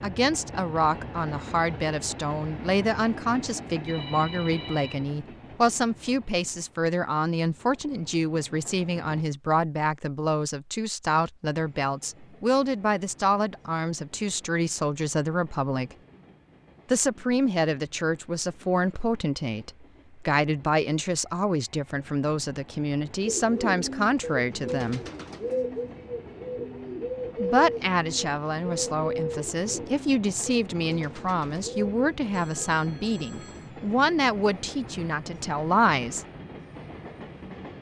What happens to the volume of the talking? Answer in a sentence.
The volume of the talking stays about the same.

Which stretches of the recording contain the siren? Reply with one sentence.
The siren can't be heard in this clip.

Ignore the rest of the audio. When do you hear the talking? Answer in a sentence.
The talking can be heard from 0.0 to 15.9 s, from 16.9 to 25.0 s and from 27.4 to 36.2 s.